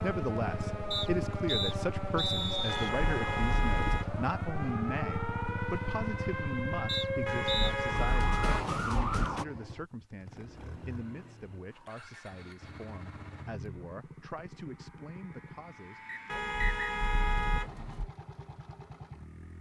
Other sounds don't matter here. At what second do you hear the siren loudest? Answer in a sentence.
The loudest moment of the siren is at 9 seconds.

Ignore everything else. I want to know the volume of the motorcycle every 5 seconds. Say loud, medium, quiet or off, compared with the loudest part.
loud, loud, medium, medium.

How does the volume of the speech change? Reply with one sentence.
The volume of the speech goes down.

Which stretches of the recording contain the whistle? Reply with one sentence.
You can hear the whistle from 0.9 to 2.9 s, from 6.8 to 7.8 s and from 16.1 to 16.9 s.